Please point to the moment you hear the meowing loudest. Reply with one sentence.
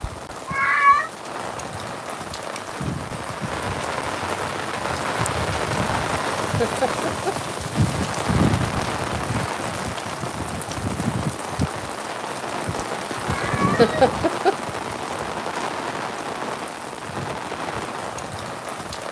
The loudest moment of the meowing is at 1 second.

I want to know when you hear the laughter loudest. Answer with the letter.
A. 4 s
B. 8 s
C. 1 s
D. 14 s
D.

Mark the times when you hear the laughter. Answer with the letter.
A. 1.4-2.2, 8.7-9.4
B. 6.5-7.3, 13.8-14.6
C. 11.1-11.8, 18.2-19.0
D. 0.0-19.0
B.